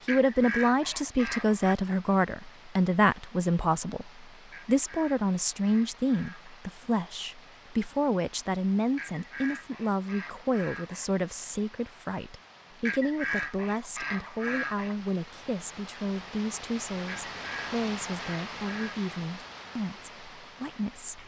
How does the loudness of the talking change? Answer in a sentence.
The loudness of the talking goes down.